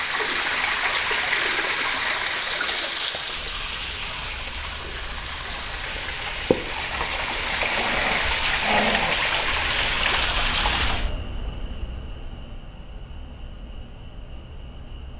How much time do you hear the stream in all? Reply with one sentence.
The stream can be heard for 11 seconds in total.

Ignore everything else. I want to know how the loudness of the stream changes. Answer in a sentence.
The loudness of the stream goes down, then up.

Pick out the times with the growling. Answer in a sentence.
The growling can be heard from 7.7 to 9.2 s.